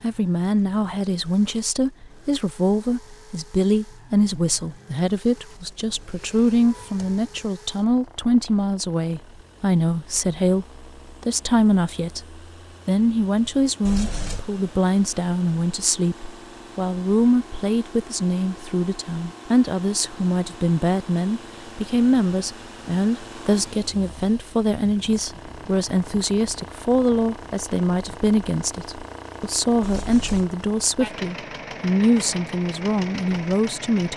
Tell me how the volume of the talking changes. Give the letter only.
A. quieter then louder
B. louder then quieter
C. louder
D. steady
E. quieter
D.